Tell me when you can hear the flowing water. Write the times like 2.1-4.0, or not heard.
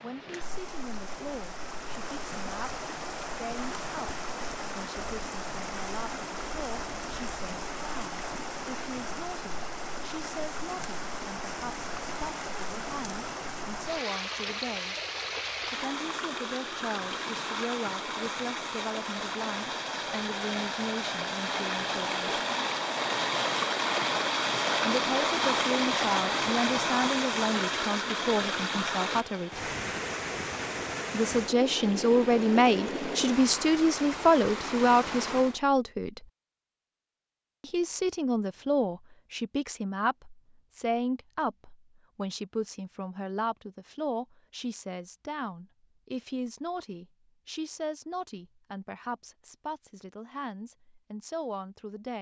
0.0-35.6.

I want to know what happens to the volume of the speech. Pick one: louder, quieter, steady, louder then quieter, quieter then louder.
louder then quieter.